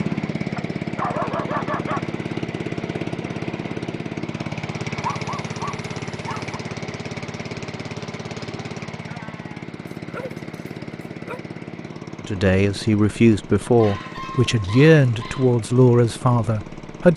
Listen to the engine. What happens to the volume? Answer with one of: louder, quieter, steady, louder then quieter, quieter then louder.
quieter.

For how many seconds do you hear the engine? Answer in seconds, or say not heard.
17 s.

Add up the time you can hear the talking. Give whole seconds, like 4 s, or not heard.
5 s.